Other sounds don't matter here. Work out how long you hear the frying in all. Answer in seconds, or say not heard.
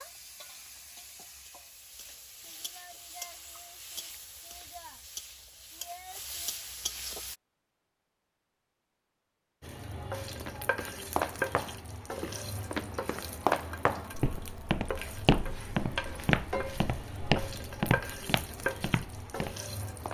18 s.